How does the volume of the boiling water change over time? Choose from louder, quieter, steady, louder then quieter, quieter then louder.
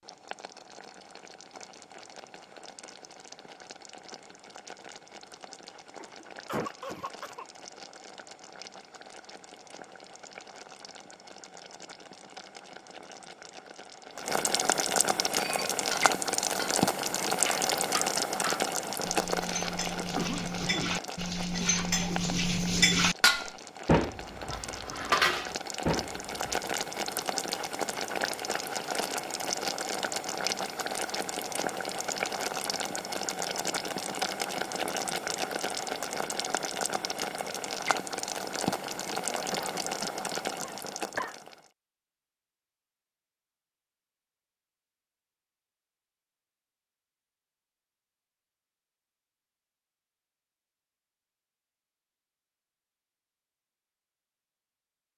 louder.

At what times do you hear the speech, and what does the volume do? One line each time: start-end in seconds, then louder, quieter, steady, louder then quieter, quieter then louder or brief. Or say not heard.
not heard.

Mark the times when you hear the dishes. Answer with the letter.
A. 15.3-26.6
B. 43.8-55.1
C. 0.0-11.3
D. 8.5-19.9
A.